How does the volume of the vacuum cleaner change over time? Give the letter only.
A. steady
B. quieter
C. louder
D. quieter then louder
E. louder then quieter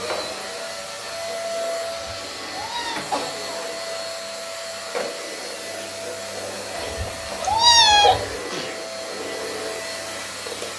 A.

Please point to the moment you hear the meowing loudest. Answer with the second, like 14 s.
8 s.